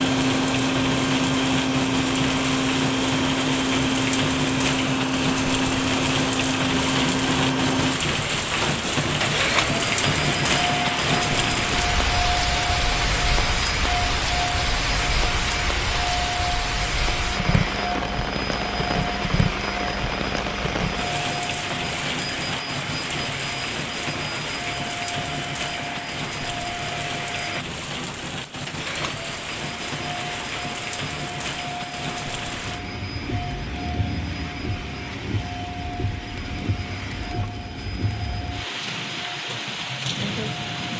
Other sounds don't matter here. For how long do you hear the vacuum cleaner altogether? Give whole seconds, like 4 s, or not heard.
41 s.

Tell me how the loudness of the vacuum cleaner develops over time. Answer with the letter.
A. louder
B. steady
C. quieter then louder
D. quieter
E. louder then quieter
D.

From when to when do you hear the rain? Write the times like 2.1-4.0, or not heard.
0.0-40.9.